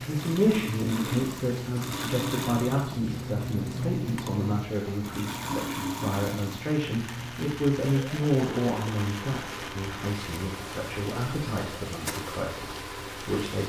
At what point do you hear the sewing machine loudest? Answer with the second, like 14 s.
4 s.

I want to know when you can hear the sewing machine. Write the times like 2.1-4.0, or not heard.
0.0-13.6.